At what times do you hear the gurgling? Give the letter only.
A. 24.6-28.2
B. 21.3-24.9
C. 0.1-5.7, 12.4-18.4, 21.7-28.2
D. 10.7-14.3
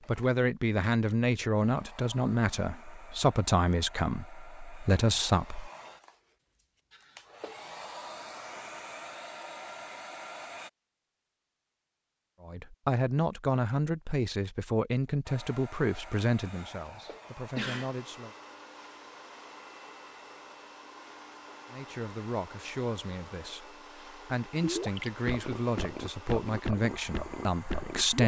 A.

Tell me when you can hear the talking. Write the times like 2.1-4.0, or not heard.
0.1-5.7, 12.4-18.4, 21.7-28.2.